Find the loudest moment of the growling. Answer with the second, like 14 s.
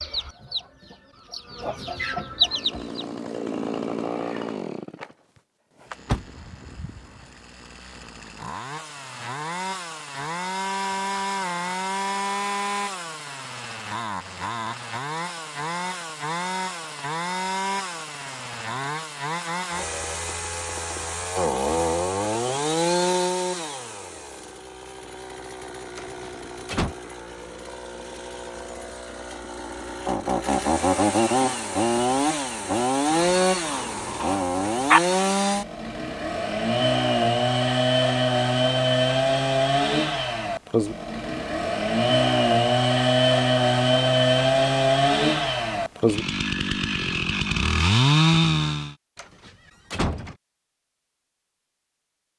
35 s.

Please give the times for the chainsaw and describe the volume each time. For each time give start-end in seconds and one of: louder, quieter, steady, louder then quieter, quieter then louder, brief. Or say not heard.
2.2-49.0 louder.